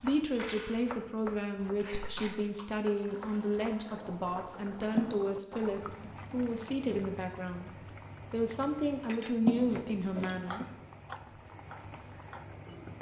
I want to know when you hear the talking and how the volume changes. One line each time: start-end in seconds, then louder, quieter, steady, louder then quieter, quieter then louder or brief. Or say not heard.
0.0-7.7 steady
8.3-10.6 brief.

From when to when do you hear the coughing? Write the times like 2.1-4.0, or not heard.
1.8-2.6, 5.0-5.5, 9.4-10.7.